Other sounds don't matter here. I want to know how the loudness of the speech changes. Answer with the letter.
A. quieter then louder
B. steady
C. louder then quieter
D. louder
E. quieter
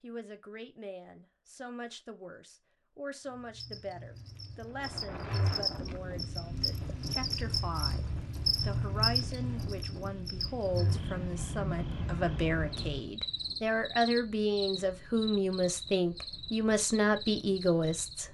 D.